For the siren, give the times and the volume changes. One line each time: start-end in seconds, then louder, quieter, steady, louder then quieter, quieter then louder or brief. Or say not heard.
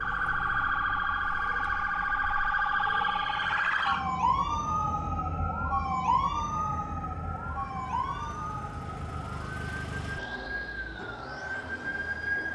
0.0-12.4 quieter.